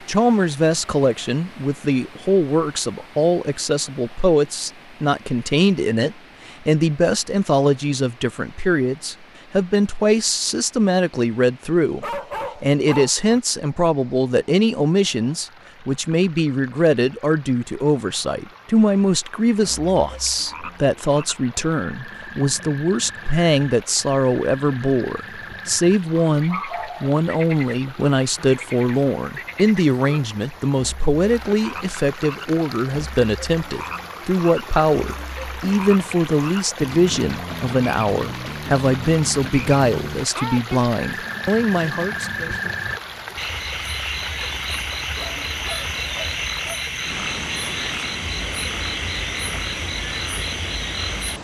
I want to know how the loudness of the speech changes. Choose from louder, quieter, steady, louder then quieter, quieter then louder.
steady.